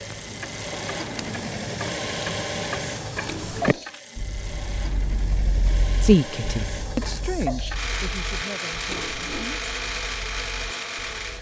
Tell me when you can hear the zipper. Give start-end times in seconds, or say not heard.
3.2-3.8, 8.9-9.4.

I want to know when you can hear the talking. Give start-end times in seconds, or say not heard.
6.0-9.6.